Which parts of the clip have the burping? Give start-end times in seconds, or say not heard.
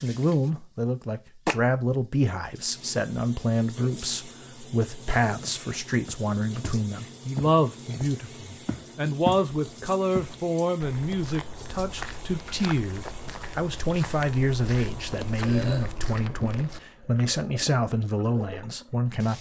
15.4-15.9.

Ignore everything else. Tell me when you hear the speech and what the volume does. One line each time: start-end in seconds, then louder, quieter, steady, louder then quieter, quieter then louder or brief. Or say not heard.
0.0-19.3 steady.